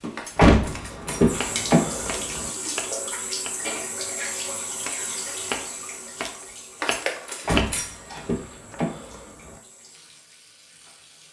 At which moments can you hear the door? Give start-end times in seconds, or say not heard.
0.3-2.5, 7.5-9.6.